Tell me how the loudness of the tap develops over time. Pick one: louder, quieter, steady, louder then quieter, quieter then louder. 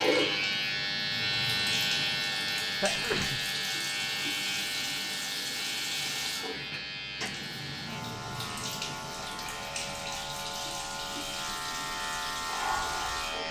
steady.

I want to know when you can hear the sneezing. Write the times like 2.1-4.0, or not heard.
2.8-3.4.